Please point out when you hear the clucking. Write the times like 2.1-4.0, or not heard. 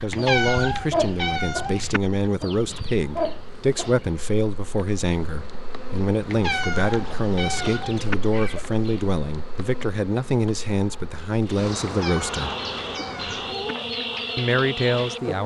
0.0-4.1, 6.9-9.1, 12.3-15.2.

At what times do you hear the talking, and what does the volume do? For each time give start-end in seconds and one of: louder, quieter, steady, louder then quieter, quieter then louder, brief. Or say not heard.
0.0-12.6 steady
14.3-15.4 brief.